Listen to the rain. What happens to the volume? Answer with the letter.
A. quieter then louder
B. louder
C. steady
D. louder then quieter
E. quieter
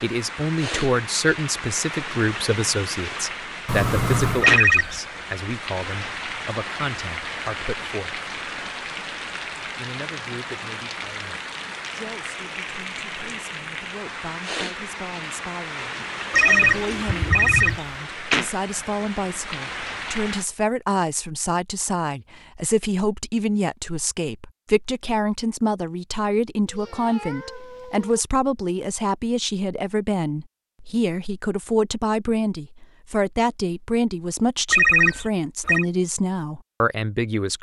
C.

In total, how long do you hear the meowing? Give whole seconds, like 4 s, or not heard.
4 s.